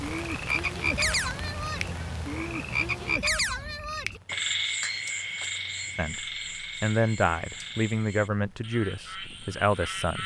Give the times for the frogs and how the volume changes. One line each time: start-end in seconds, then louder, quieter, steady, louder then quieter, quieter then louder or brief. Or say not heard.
0.0-10.2 quieter.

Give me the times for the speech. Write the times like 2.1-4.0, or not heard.
6.0-10.2.